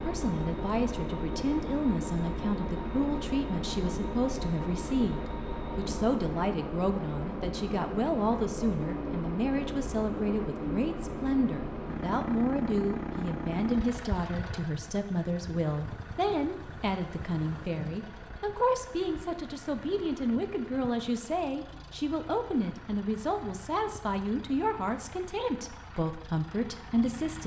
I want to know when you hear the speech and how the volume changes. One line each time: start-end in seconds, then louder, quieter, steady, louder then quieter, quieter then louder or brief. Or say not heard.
0.0-27.4 steady.